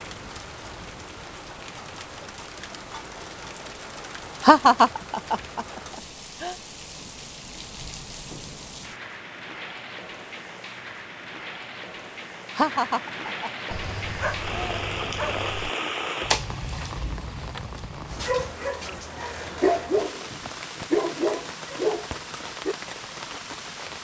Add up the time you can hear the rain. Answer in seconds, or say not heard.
24 s.